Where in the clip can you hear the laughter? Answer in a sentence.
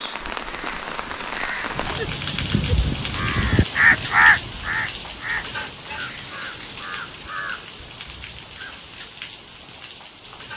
The laughter can't be heard in this clip.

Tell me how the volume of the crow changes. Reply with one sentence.
The loudness of the crow goes up, then down.